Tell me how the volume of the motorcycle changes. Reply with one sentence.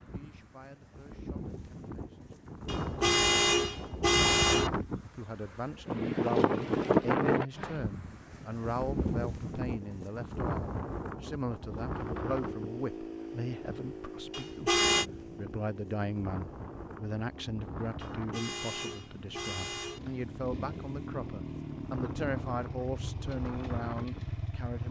The loudness of the motorcycle goes down, then up.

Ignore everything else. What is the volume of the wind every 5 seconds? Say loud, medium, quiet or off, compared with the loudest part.
medium, loud, medium, quiet, quiet.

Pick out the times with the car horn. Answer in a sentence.
The car horn can be heard from 2.6 to 4.7 s, from 14.3 to 15.1 s and from 18.0 to 20.0 s.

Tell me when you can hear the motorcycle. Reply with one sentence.
The motorcycle can be heard from 11.7 to 24.8 s.